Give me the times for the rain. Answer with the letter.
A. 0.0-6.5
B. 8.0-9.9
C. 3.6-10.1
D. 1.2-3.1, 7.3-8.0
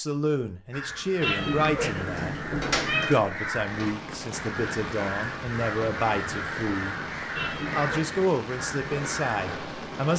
C.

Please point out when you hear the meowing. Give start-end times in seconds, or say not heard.
1.2-3.1, 7.3-8.0.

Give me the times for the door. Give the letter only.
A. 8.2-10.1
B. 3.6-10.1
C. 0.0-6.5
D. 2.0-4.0
D.